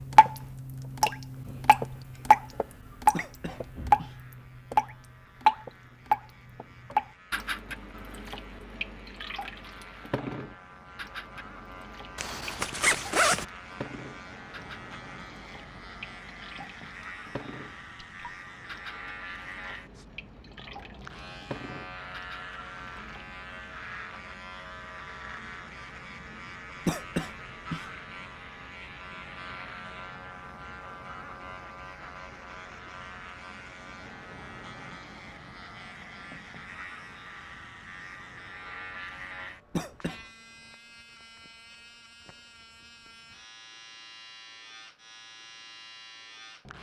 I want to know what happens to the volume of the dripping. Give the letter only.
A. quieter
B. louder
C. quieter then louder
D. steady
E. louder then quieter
A.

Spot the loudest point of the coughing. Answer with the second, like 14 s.
27 s.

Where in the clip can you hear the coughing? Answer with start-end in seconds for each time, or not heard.
3.1-4.2, 26.9-27.9, 39.7-40.2.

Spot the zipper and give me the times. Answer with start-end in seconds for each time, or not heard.
12.2-13.4.